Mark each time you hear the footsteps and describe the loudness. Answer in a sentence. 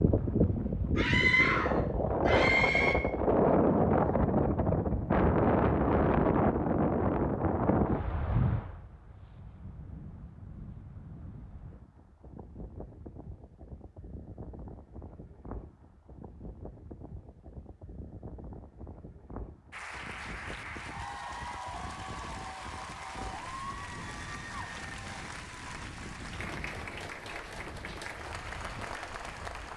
The footsteps can't be heard in this clip.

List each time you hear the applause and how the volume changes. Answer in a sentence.
The applause can be heard from 19.7 to 29.7 s, at a steady volume.